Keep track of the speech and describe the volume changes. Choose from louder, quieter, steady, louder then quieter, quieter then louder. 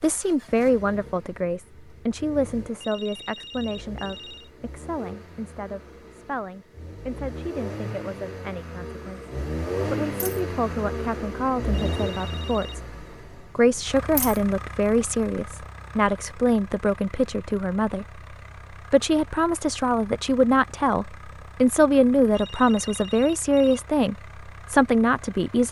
quieter then louder.